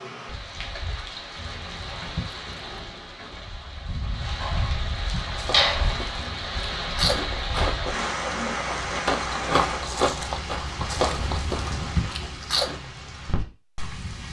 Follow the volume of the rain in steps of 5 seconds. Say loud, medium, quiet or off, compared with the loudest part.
medium, loud, medium.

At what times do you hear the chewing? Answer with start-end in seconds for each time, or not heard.
5.2-12.8.